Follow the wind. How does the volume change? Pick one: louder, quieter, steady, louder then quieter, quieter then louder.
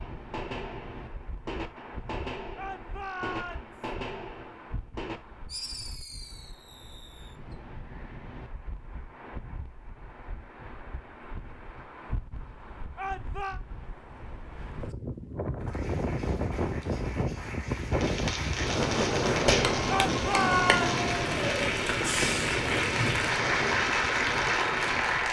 louder.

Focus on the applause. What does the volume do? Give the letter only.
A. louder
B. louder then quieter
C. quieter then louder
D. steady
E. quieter
A.